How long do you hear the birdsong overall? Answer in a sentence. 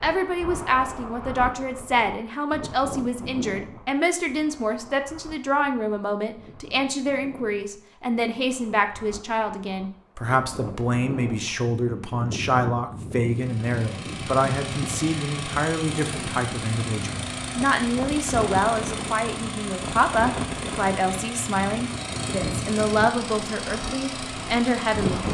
The birdsong can't be heard in this clip.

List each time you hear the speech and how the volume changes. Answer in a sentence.
You can hear the speech from 0.0 to 25.2 s, at a steady volume.